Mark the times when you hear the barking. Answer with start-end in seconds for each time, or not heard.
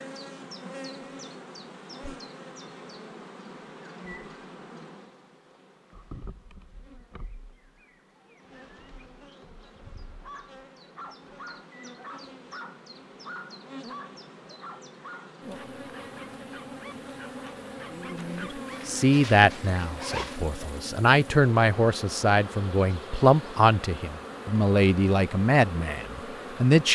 10.2-18.8.